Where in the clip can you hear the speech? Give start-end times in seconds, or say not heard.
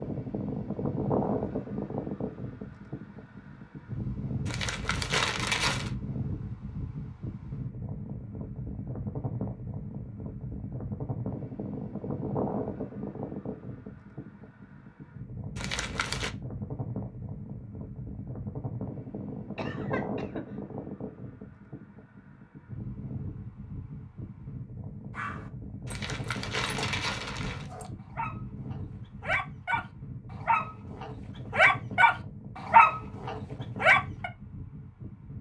not heard.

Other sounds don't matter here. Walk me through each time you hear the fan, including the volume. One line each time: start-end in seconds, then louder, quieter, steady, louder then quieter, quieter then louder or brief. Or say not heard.
0.0-35.3 quieter.